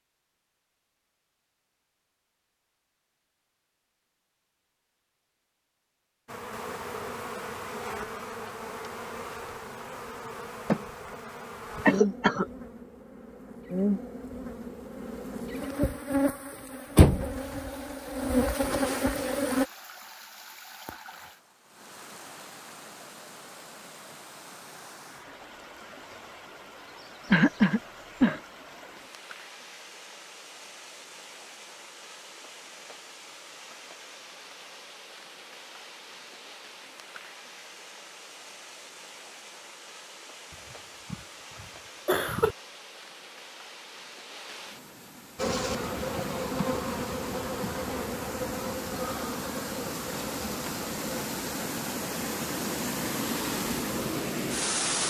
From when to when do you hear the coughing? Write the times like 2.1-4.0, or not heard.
11.8-12.4, 27.3-28.4, 41.1-42.5.